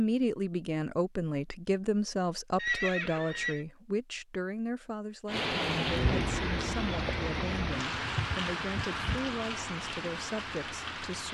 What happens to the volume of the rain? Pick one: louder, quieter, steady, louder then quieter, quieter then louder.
quieter.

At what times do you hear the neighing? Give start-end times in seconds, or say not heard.
2.5-3.6, 8.0-9.3.